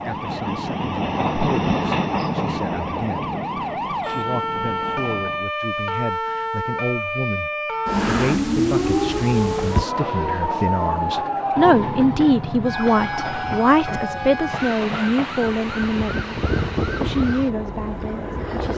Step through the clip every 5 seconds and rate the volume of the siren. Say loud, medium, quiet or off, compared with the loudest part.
medium, loud, loud, medium.